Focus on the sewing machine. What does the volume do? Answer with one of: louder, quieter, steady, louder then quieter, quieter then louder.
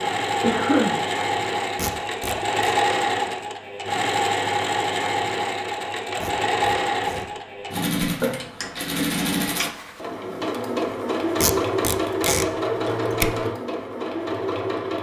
steady.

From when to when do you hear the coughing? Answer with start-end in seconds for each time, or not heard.
0.4-1.0.